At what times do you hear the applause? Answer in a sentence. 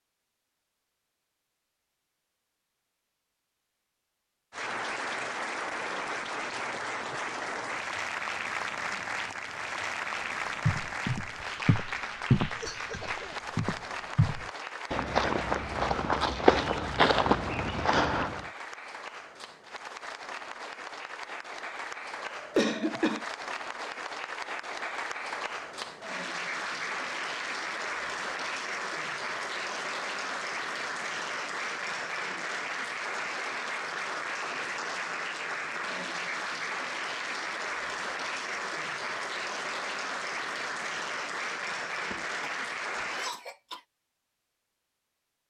You can hear the applause from 4.5 to 43.4 s.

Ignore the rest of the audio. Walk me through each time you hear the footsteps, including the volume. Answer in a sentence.
The footsteps can be heard from 10.7 to 18.4 s, getting quieter then louder.